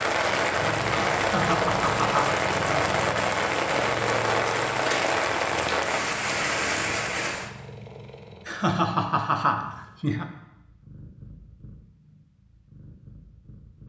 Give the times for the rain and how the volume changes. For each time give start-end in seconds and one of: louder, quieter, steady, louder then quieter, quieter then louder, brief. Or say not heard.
0.0-7.5 steady.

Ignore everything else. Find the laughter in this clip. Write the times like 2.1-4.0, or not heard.
1.1-2.9, 8.4-10.2.